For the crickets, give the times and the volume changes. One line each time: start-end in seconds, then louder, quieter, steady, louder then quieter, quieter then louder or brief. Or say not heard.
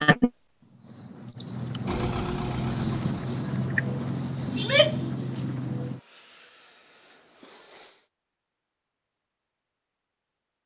0.0-7.9 louder then quieter.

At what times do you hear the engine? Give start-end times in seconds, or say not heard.
1.9-3.5.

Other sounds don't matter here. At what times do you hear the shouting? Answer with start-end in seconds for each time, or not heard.
4.5-5.1.